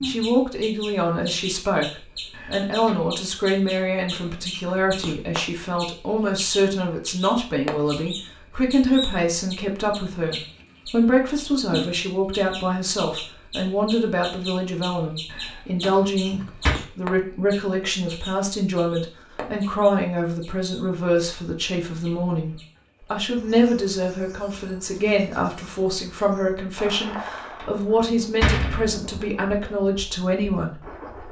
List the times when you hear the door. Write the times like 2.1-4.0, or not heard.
2.3-3.0, 15.2-16.8, 27.1-29.0.